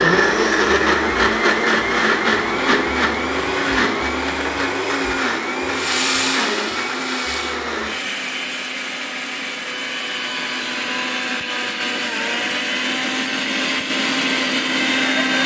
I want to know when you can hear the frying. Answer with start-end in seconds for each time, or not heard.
5.7-7.6.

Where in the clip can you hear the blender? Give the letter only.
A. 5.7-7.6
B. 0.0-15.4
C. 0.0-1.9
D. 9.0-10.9
B.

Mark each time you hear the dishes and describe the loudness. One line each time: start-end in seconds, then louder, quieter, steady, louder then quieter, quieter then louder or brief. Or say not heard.
not heard.